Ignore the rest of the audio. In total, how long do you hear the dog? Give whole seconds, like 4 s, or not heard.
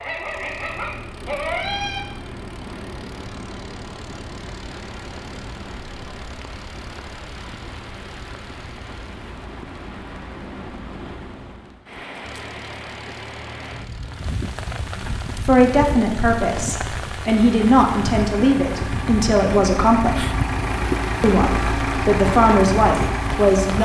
2 s.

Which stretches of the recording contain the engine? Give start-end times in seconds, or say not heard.
0.0-9.2, 12.2-23.7.